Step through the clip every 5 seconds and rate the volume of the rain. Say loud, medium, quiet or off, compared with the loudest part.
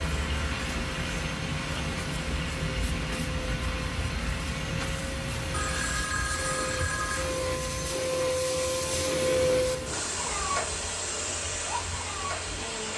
loud, medium, medium.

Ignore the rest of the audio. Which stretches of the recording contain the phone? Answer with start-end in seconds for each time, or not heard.
5.5-7.3.